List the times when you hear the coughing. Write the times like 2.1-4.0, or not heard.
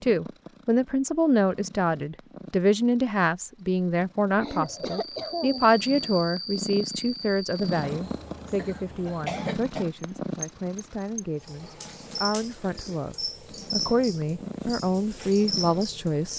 4.4-5.7, 8.6-9.8.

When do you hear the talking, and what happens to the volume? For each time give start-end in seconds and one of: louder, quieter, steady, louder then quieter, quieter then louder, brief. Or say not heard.
0.0-16.3 quieter then louder.